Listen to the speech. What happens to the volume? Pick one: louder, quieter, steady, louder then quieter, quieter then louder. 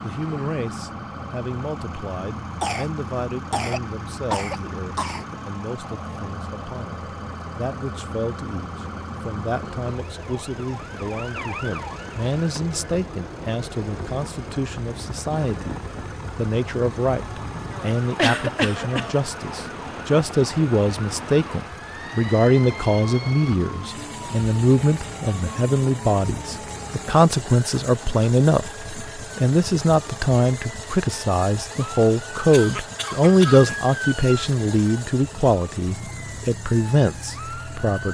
louder.